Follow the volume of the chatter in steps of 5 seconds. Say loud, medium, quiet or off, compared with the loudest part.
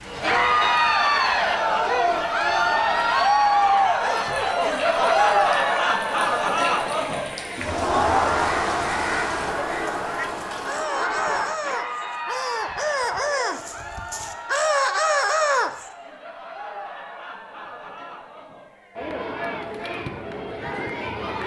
loud, loud, medium, quiet, medium.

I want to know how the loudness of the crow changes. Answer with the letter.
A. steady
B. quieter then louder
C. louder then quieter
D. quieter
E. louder
E.